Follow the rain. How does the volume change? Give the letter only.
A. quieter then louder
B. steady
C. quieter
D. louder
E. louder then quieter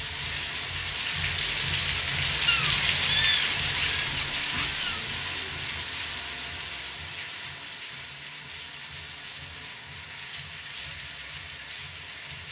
C.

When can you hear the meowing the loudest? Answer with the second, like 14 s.
3 s.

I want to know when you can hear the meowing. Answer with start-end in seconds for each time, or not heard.
2.5-5.0.